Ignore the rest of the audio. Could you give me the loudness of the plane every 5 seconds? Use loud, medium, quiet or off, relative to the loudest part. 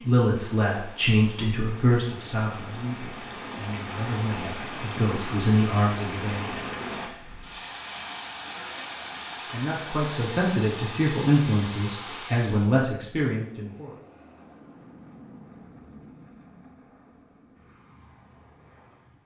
off, off, loud, loud.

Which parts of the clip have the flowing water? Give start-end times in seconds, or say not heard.
0.0-12.8.